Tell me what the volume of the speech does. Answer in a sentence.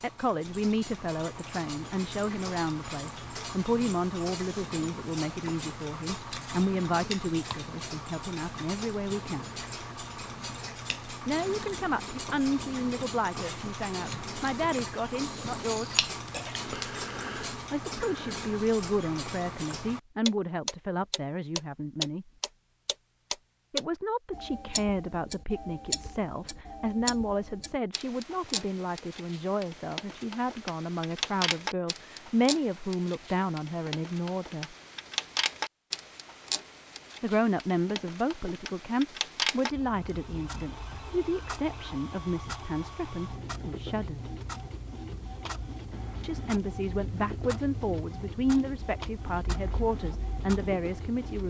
The loudness of the speech stays about the same.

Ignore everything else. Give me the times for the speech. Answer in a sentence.
The speech can be heard from 0.0 to 9.5 s, from 11.2 to 15.9 s, from 17.7 to 22.2 s, from 23.7 to 34.8 s, from 37.2 to 44.3 s and from 46.2 to 51.4 s.